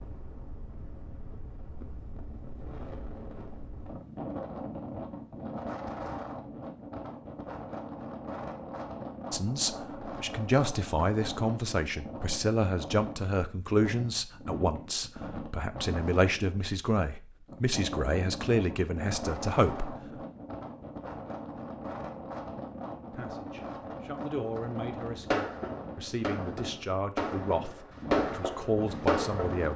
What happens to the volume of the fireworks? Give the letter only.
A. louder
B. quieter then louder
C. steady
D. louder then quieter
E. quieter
A.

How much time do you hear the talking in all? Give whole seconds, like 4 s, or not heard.
17 s.